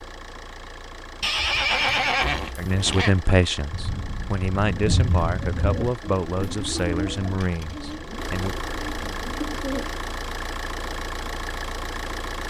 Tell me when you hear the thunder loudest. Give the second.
5 s.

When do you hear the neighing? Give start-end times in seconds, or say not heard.
1.2-3.2.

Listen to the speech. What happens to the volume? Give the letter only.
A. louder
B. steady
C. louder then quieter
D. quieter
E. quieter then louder
D.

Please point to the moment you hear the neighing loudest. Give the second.
2 s.